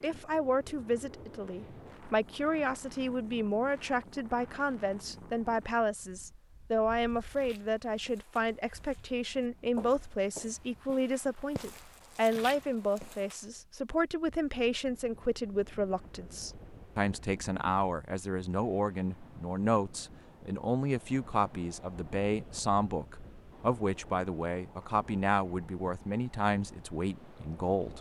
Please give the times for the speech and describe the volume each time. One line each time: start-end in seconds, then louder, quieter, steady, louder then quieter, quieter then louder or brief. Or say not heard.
0.0-27.9 steady.